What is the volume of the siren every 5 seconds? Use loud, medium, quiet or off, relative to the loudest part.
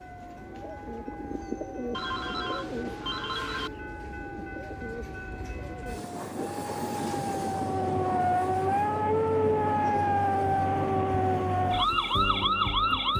quiet, loud, loud.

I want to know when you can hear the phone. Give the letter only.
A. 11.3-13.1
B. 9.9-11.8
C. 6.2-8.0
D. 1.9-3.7
D.